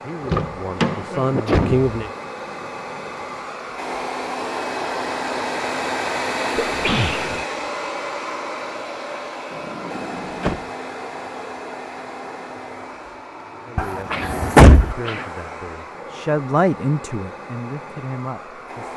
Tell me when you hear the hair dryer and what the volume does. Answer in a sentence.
The hair dryer can be heard from 0.0 to 18.9 s, getting louder then quieter.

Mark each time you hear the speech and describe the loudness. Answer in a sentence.
The speech can be heard briefly from 0.0 to 2.1 s; and from 13.7 to 18.9 s, getting louder then quieter.